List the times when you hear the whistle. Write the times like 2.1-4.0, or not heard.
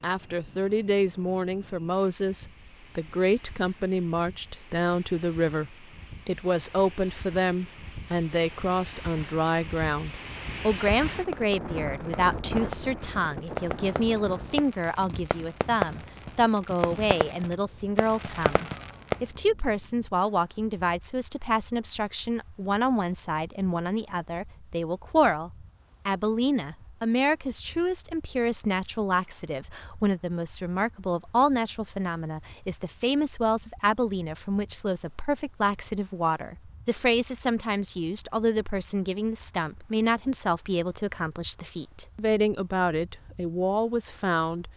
not heard.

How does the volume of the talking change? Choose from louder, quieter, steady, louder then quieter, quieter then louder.
steady.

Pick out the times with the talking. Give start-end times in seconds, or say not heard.
0.0-44.7.